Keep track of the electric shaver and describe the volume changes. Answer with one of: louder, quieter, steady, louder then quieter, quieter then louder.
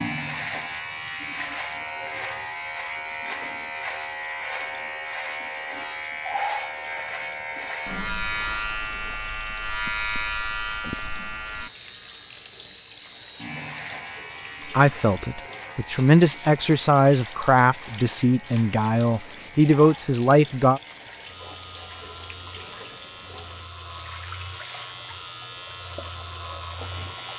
quieter.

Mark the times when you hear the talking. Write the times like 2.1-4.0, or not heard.
14.7-20.8.